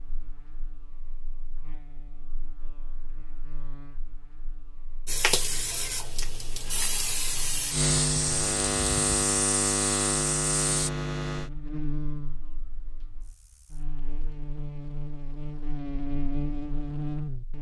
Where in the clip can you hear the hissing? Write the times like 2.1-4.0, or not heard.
5.0-10.9.